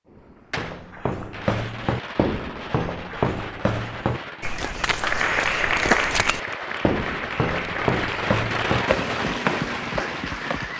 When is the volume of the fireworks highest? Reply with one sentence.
The volume of the fireworks peaks at 9 seconds.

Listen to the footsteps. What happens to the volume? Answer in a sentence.
The volume of the footsteps stays about the same.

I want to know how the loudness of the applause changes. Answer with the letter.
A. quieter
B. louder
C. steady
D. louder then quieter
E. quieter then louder
A.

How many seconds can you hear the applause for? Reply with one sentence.
You can hear the applause for 6 seconds altogether.